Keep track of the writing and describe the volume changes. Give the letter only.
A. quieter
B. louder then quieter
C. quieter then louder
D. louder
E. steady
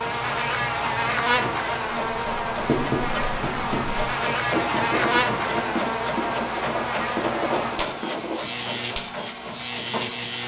E.